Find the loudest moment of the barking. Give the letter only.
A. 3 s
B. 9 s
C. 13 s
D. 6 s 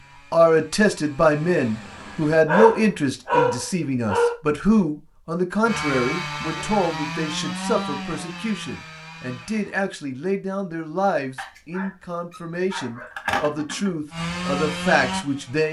A.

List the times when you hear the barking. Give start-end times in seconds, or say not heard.
2.5-4.3, 11.3-13.9.